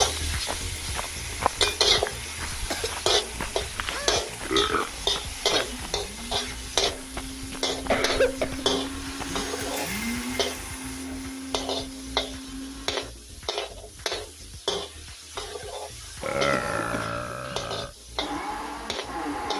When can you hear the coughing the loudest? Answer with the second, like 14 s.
8 s.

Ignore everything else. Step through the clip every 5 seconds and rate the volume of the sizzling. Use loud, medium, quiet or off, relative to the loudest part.
loud, loud, medium, medium.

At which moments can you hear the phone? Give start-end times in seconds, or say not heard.
not heard.